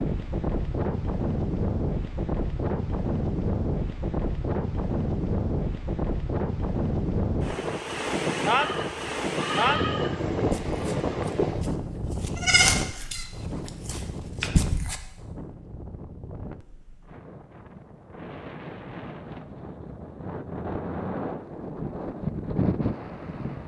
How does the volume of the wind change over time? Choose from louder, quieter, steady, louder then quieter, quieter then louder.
quieter then louder.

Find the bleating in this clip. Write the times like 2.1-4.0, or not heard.
8.6-14.9.